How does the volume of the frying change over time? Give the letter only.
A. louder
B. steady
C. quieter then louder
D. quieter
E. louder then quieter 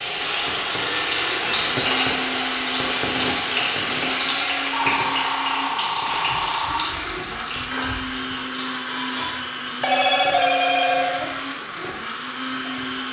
D.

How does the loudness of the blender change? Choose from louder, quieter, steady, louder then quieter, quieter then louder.
steady.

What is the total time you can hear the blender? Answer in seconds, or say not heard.
13 s.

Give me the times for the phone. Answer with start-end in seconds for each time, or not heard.
0.7-1.7, 4.7-6.8, 9.8-11.3.